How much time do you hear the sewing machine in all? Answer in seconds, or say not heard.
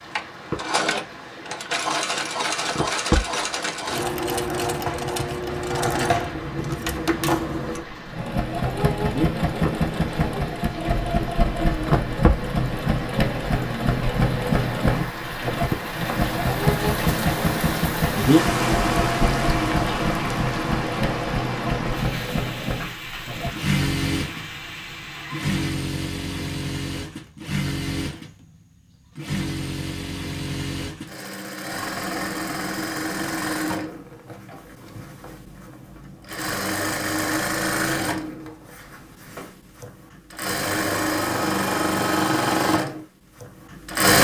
44 s.